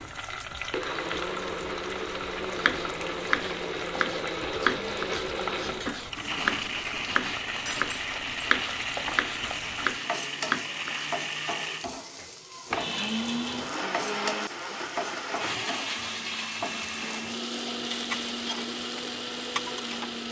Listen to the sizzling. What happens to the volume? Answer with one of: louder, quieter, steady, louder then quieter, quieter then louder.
steady.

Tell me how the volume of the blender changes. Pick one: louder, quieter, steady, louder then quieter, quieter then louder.
steady.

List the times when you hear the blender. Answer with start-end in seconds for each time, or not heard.
0.0-20.2.